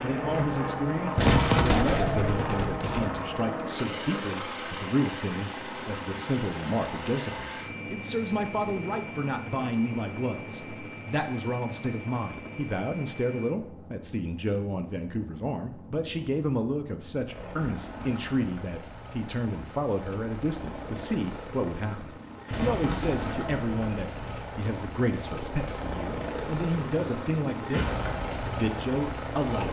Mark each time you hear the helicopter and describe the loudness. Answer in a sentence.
The helicopter can be heard from 0.0 to 29.6 s, getting quieter then louder.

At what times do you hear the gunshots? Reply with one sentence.
The gunshots can be heard from 1.1 to 3.1 s and from 22.5 to 24.4 s.